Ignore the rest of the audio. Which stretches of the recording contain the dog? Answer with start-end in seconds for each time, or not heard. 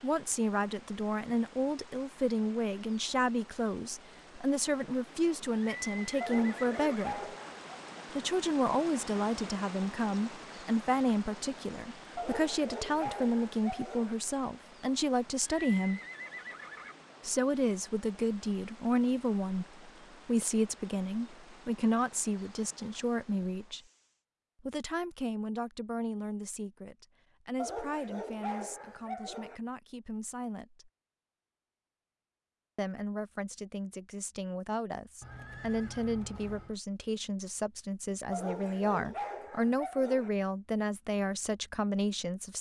6.2-7.7, 12.2-14.2, 27.6-29.6, 38.3-40.3.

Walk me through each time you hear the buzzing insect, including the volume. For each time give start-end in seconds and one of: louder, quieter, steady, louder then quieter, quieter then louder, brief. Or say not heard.
not heard.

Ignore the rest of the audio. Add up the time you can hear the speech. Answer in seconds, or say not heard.
38 s.